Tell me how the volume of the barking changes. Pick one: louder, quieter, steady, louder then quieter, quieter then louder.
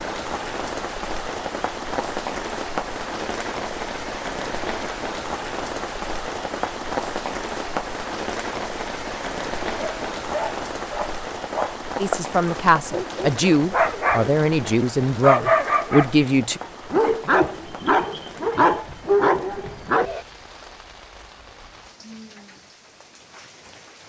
louder.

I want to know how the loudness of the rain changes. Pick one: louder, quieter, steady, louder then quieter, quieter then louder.
quieter.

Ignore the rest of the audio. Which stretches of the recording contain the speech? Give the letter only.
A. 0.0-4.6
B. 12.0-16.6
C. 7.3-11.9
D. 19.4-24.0
B.